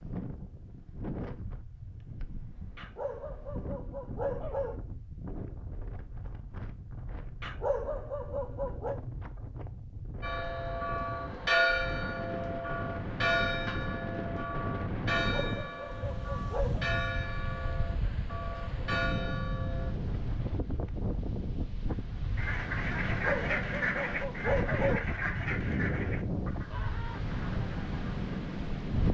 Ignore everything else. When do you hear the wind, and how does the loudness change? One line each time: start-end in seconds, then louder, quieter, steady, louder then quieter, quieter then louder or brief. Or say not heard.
0.0-29.0 louder.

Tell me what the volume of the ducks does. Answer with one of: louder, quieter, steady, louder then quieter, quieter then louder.
quieter.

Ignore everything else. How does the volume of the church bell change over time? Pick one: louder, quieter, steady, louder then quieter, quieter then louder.
quieter.